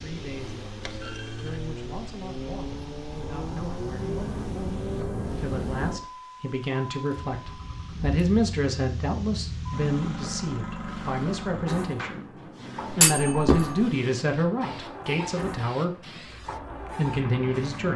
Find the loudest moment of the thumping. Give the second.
13 s.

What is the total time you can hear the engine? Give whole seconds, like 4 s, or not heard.
18 s.